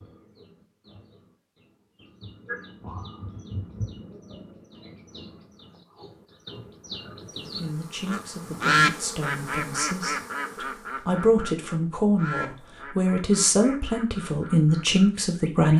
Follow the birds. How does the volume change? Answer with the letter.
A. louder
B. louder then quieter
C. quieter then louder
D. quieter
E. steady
B.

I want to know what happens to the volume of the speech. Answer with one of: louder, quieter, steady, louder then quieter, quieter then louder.
louder.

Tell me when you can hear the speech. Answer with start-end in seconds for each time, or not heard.
7.3-15.7.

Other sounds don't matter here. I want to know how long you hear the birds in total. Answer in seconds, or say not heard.
16 s.